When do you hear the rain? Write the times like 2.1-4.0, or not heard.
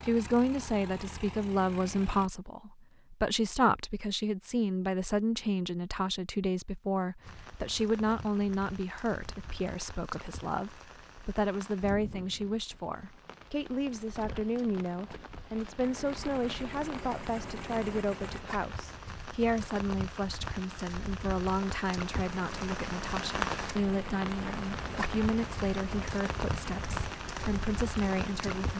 7.2-28.7.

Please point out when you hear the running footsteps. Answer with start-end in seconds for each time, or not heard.
not heard.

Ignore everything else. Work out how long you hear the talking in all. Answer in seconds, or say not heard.
29 s.